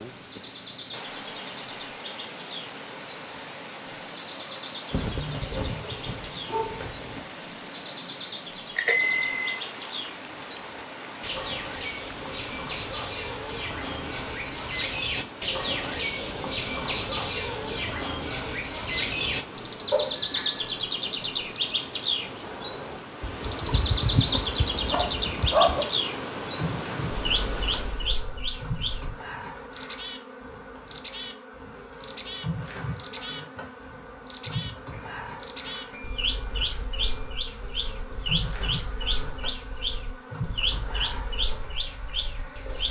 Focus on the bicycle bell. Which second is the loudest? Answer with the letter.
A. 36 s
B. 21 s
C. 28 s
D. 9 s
D.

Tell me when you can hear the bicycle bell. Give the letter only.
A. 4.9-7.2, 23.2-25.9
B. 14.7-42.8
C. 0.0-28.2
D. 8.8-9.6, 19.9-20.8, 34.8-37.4
D.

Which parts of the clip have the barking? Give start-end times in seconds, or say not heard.
4.9-7.2, 23.2-25.9.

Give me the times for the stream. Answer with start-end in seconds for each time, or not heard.
0.0-28.2.